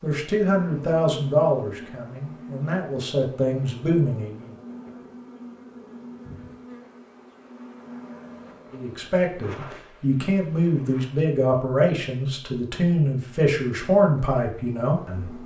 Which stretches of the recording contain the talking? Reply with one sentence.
You can hear the talking from 0.0 to 4.5 s and from 8.7 to 15.4 s.